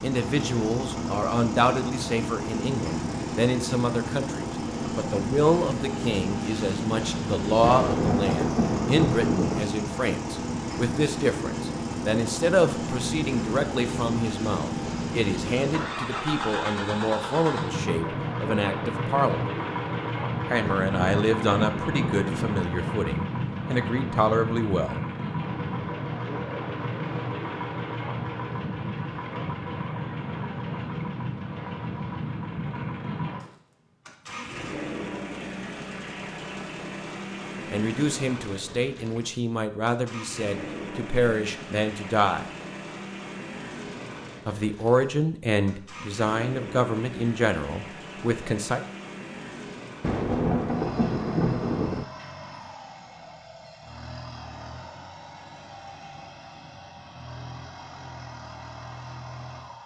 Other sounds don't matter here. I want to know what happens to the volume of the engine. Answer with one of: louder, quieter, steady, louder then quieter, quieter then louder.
quieter.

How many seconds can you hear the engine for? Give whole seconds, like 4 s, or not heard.
60 s.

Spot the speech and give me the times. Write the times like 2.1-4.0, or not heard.
0.0-19.4, 20.4-25.0, 37.7-42.5, 44.5-48.8.